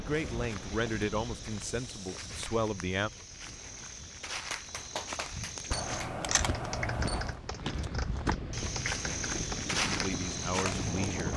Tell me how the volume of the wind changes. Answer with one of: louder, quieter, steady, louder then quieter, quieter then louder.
quieter then louder.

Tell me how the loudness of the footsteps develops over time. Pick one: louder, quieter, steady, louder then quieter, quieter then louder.
louder.